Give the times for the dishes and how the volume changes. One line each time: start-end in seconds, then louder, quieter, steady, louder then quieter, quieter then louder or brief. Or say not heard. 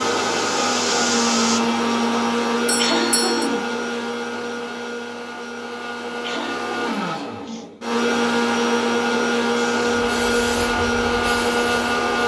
not heard.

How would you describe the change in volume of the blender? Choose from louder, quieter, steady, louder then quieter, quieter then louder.
quieter then louder.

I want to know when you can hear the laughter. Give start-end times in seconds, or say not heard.
2.8-3.6, 6.2-7.7.